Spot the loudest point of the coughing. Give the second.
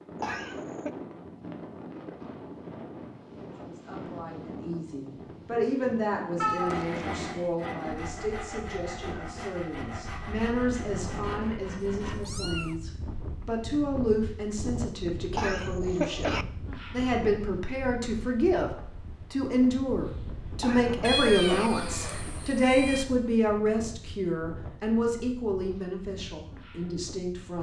16 s.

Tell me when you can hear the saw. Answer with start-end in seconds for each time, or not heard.
6.5-12.2.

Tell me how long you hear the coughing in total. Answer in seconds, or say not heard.
3 s.